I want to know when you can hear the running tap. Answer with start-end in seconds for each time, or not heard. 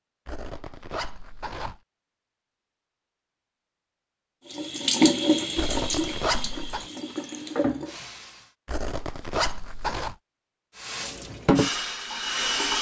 4.5-8.5, 10.8-12.7.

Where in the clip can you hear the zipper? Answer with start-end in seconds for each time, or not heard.
0.2-1.8, 5.5-6.9, 8.7-10.2.